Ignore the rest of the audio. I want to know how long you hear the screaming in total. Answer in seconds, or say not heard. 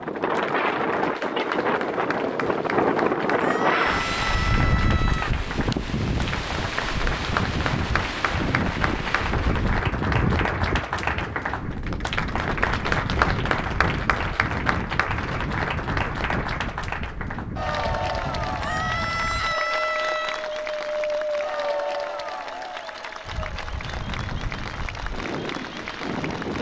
4 s.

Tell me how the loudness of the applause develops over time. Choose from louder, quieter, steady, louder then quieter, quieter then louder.
louder then quieter.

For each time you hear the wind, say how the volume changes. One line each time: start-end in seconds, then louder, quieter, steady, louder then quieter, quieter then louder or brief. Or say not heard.
0.0-26.5 quieter.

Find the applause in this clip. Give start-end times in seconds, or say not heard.
0.0-26.5.